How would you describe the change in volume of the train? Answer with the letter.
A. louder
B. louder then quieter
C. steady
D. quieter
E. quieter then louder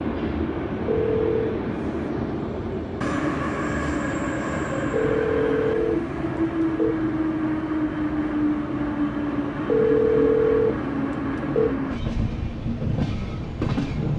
C.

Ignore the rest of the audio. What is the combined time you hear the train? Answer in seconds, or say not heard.
14 s.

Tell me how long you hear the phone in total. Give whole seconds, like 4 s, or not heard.
5 s.